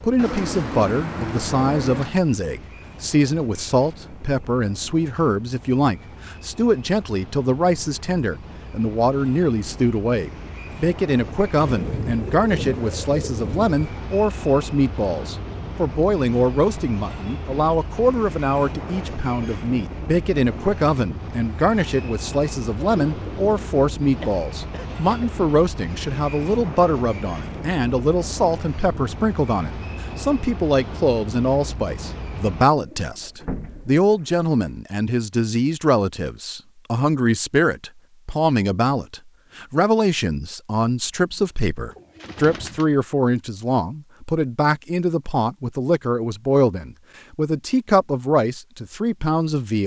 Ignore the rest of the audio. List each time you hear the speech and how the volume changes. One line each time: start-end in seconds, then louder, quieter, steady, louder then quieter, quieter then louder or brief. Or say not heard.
0.0-49.8 steady.